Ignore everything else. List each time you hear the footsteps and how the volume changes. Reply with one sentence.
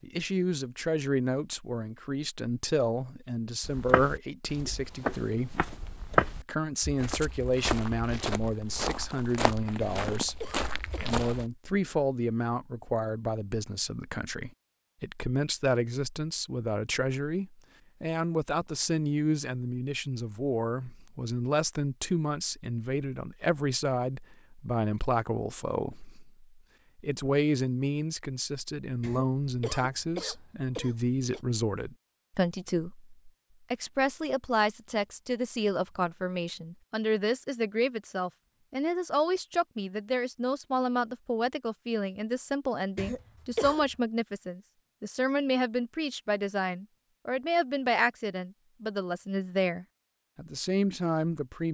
You can hear the footsteps from 3.6 to 11.4 s, getting louder then quieter.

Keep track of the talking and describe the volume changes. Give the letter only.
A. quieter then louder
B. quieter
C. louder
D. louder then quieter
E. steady
E.